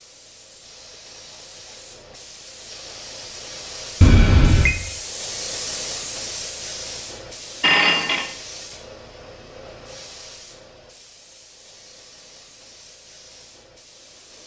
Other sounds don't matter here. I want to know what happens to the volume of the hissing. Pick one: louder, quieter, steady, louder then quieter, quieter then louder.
louder then quieter.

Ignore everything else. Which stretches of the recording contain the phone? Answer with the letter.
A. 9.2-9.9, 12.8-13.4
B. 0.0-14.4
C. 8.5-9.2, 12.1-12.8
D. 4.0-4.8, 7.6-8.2
D.